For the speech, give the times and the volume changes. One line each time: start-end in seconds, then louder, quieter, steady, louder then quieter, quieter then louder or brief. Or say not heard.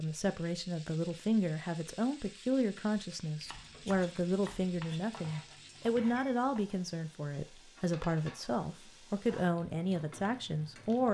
0.0-11.0 steady.